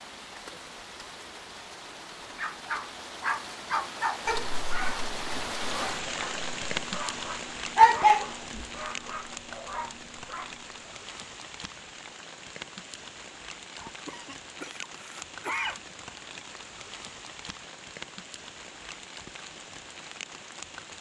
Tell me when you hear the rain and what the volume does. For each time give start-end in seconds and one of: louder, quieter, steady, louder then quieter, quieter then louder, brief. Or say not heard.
0.0-20.9 louder then quieter.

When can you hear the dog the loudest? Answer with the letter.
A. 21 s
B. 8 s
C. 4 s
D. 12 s
B.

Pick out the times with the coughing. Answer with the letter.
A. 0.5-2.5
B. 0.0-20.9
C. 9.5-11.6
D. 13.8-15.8
D.